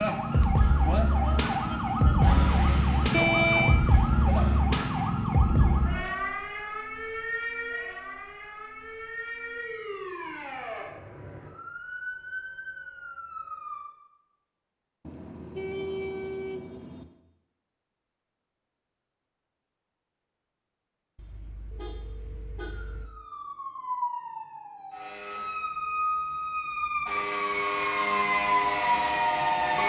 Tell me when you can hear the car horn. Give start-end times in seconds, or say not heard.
3.1-3.8, 15.1-17.1, 21.1-23.1.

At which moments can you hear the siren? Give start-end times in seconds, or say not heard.
0.0-13.8, 22.7-29.8.